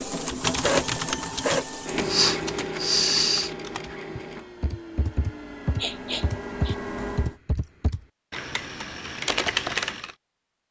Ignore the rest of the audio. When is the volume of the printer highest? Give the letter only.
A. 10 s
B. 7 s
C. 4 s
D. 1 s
D.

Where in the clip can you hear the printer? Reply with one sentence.
You can hear the printer from 0.0 to 7.3 s.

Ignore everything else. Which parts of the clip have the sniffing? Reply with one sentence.
You can hear the sniffing from 2.0 to 3.5 s and from 5.8 to 6.8 s.